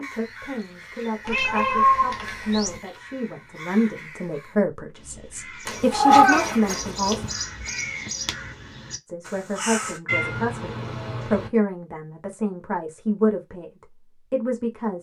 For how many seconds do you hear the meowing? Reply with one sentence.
The meowing can be heard for 5 seconds in total.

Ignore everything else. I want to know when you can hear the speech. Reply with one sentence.
You can hear the speech from 0.0 to 7.2 s and from 9.1 to 14.9 s.